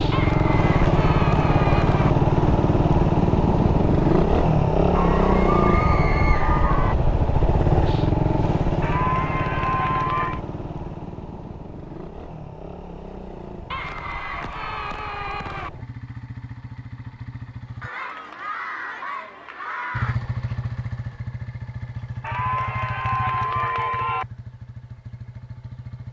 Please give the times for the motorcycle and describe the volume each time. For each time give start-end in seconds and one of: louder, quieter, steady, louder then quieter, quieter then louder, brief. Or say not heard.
0.0-17.9 quieter
19.9-26.0 quieter.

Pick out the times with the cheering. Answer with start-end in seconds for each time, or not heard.
0.1-2.1, 4.9-7.0, 8.8-10.4, 13.7-15.7, 17.8-20.1, 22.2-24.2.